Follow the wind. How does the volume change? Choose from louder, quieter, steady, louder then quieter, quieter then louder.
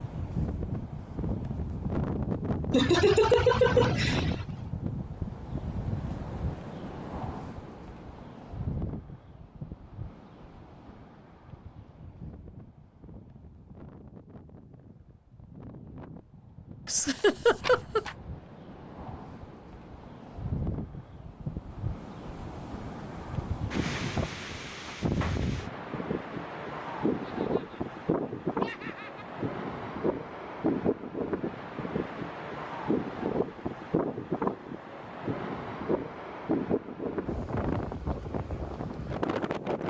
quieter then louder.